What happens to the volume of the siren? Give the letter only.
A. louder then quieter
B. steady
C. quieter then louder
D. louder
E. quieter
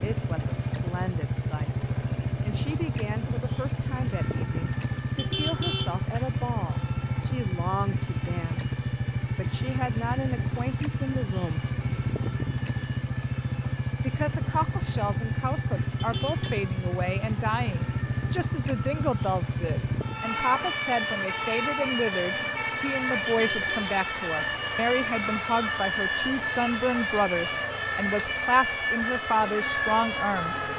D.